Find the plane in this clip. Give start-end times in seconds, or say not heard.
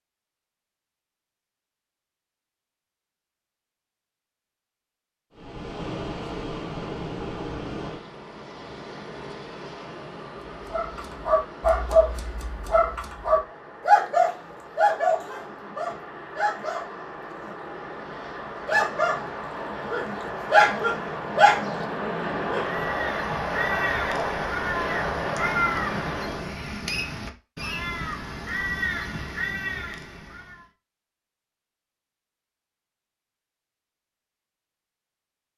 5.3-26.6.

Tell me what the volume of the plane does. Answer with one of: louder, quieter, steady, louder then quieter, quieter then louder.
quieter then louder.